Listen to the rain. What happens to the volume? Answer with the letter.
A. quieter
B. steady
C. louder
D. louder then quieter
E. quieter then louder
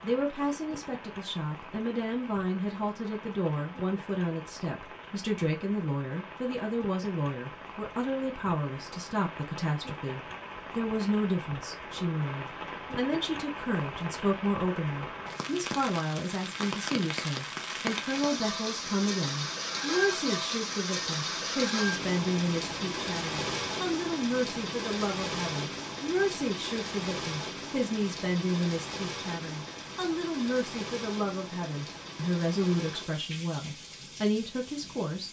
D.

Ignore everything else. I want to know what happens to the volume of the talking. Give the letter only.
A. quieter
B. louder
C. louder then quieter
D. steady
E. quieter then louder
D.